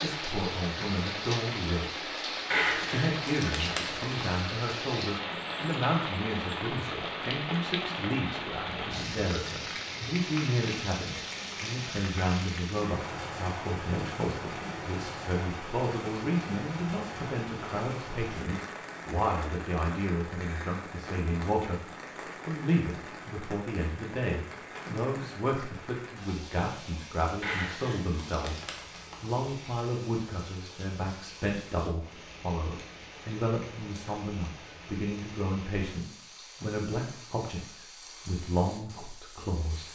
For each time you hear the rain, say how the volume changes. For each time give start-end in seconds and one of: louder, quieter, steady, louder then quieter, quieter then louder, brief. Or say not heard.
0.0-39.9 quieter.